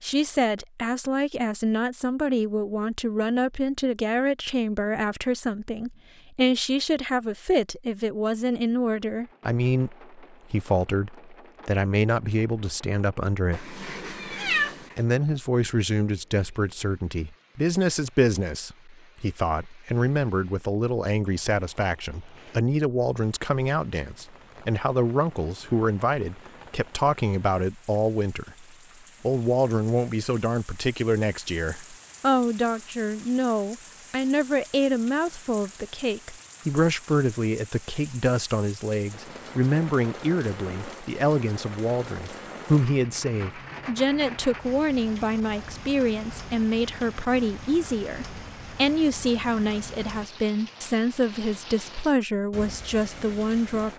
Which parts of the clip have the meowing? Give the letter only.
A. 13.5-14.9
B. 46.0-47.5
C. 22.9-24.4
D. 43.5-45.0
A.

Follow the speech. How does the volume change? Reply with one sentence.
The loudness of the speech stays about the same.